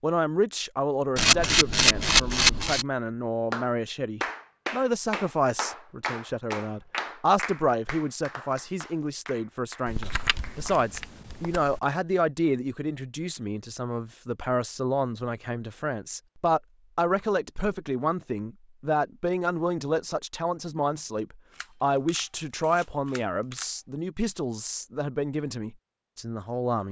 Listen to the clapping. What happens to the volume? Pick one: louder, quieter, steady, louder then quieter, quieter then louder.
quieter.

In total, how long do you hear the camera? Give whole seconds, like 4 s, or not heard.
6 s.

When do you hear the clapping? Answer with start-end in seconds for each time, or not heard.
3.5-11.4.